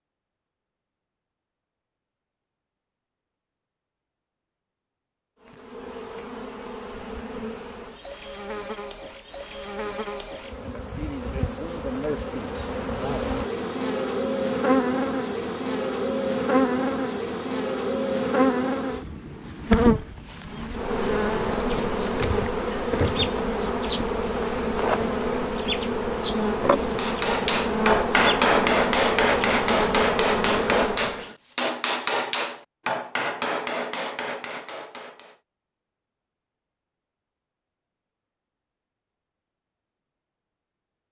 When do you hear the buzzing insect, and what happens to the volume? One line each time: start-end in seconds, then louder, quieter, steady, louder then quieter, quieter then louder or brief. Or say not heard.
5.4-31.3 louder.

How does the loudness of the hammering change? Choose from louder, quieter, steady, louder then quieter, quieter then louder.
quieter.